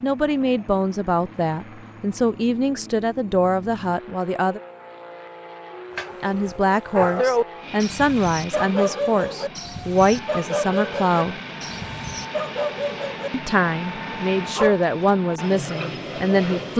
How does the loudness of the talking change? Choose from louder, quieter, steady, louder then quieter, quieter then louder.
steady.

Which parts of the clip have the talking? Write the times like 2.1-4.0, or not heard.
0.0-4.6, 6.2-11.3, 13.3-16.7.